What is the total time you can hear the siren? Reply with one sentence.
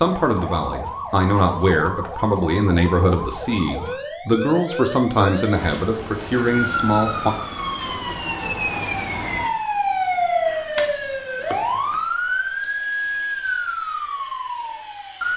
The siren can be heard for 15 seconds in total.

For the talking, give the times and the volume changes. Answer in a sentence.
You can hear the talking from 0.0 to 7.3 s, at a steady volume.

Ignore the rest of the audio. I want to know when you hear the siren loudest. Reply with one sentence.
The volume of the siren peaks at 10 seconds.